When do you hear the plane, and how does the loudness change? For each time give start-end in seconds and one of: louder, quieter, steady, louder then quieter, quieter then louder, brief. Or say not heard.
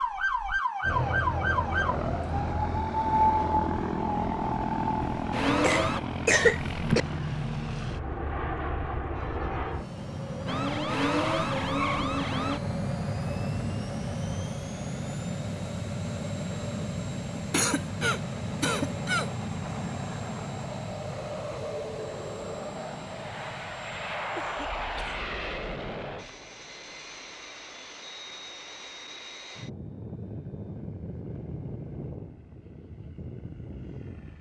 0.0-34.3 quieter.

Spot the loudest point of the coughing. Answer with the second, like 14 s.
6 s.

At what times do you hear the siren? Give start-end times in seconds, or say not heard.
0.0-6.0, 10.4-12.6.